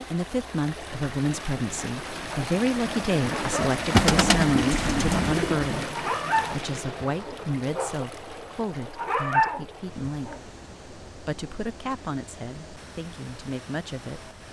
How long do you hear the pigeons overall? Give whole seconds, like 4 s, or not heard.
2 s.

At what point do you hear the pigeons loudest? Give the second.
4 s.